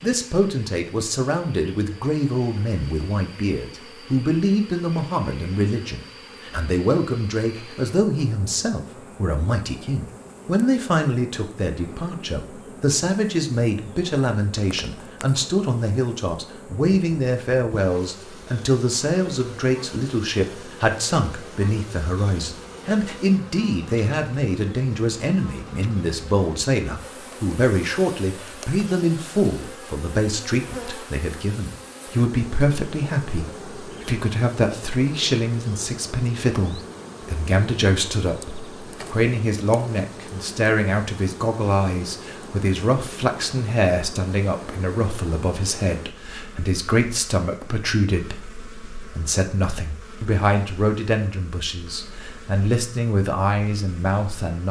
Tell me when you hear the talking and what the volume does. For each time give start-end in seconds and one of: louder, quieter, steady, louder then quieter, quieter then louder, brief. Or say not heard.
0.0-54.6 steady.